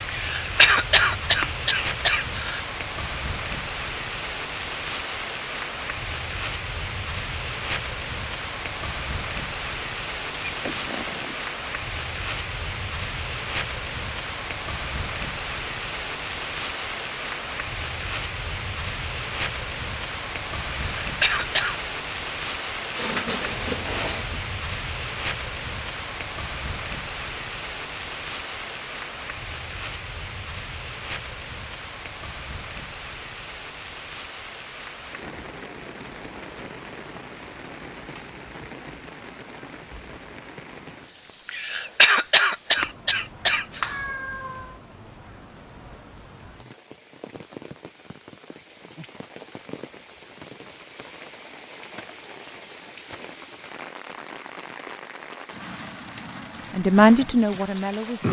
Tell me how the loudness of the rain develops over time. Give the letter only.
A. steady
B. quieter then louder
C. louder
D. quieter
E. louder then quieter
D.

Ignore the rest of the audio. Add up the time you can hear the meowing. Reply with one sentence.
You can hear the meowing for 3 seconds altogether.